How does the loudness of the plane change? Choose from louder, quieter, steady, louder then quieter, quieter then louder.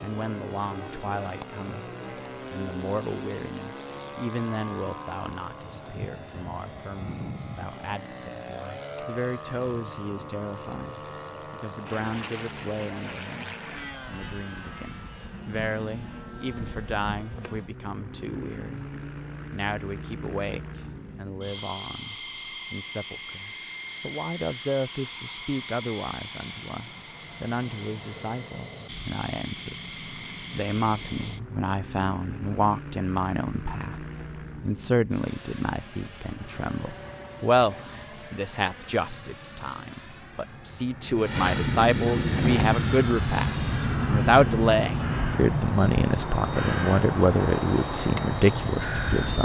louder.